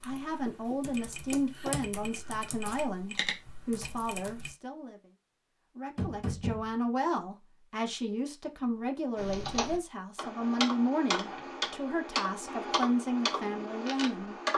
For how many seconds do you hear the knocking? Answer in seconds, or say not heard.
4 s.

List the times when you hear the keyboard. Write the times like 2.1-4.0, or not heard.
0.0-4.5, 9.2-14.5.